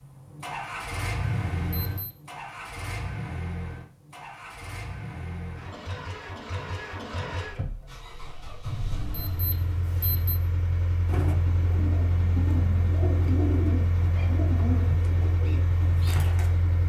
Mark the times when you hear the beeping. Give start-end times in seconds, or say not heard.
1.2-2.1, 8.7-10.4.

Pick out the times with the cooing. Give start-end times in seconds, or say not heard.
11.1-16.6.